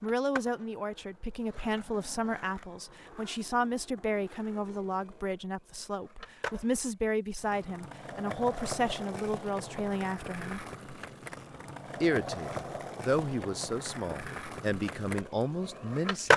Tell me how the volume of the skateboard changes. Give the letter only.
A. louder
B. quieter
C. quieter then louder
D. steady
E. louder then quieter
A.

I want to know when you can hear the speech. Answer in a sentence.
The speech can be heard from 0.0 to 10.7 s and from 12.0 to 16.3 s.